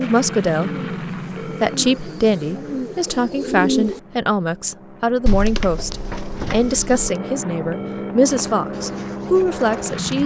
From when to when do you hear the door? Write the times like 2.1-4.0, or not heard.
5.2-6.8.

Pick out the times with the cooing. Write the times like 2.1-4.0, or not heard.
0.0-4.0, 8.5-10.2.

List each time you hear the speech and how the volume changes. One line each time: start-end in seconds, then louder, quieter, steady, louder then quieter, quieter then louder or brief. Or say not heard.
0.0-0.7 brief
1.4-10.2 steady.